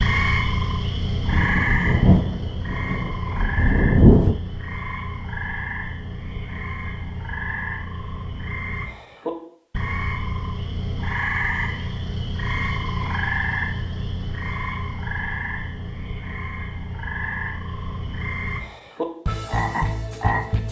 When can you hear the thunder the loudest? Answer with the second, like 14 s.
4 s.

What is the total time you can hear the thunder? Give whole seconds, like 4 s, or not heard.
3 s.